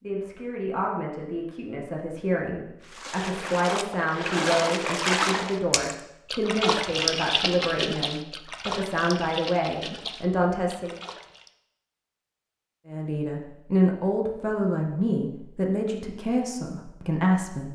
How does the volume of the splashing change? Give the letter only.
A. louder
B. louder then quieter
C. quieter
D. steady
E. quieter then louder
C.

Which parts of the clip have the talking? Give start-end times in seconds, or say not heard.
0.0-10.9, 12.8-17.7.